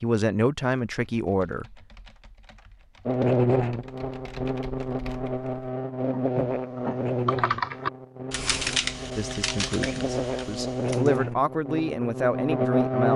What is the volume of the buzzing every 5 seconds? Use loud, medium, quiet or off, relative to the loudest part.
loud, medium, loud.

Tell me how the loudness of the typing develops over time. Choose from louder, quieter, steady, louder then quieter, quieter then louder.
louder then quieter.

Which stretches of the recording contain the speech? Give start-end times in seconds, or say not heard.
0.0-1.8, 9.2-13.1.